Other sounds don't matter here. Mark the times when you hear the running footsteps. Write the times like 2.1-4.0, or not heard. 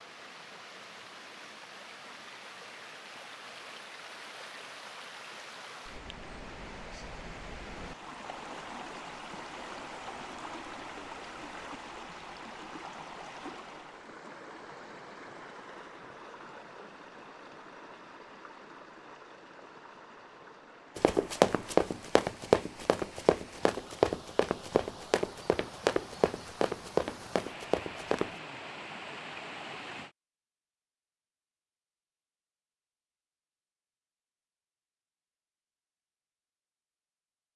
20.9-28.3.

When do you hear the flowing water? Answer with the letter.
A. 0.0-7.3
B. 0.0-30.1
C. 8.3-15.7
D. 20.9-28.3
B.